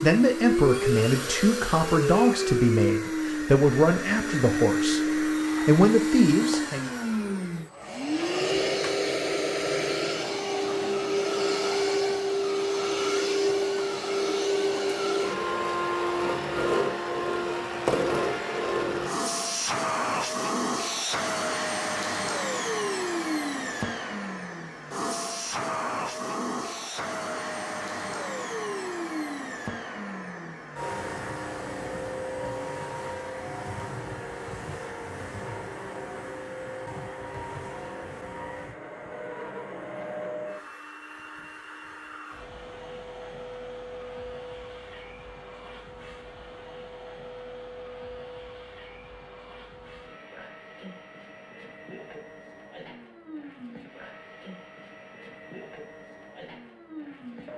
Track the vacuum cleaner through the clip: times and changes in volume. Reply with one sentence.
The vacuum cleaner can be heard from 0.0 to 57.5 s, getting quieter.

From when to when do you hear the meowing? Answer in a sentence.
The meowing can't be heard in this clip.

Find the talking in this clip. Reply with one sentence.
You can hear the talking from 0.0 to 6.8 s.